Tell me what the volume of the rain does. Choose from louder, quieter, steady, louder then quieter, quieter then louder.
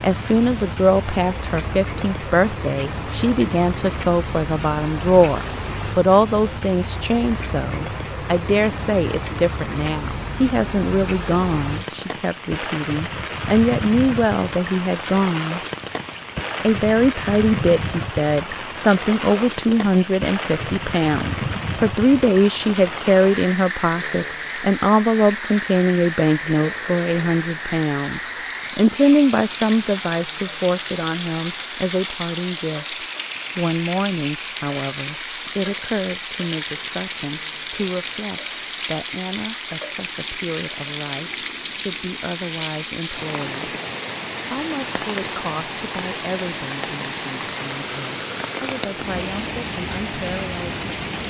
steady.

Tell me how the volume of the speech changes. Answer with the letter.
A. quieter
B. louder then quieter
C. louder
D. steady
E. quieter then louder
A.